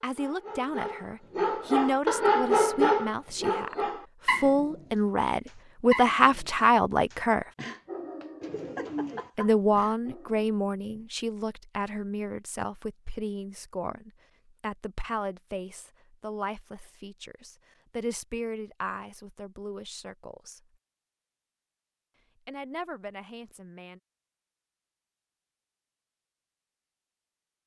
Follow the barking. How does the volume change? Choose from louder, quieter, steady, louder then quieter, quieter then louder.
quieter.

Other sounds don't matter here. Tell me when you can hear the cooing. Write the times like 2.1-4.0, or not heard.
8.4-9.3.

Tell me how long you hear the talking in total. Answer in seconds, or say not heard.
20 s.